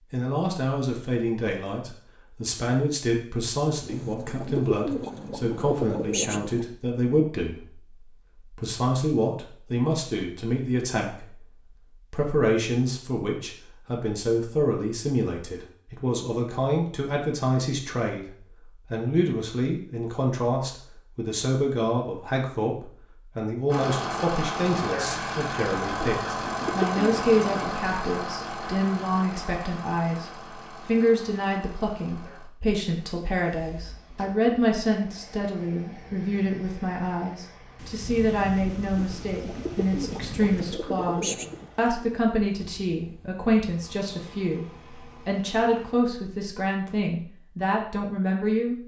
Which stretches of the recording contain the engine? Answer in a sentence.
You can hear the engine from 23.6 to 46.0 s.